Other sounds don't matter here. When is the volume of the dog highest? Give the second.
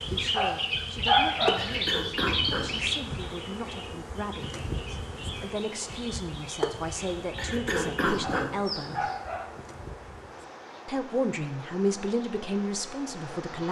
1 s.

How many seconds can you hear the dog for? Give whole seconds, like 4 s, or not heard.
3 s.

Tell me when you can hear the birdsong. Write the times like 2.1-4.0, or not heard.
0.0-9.2.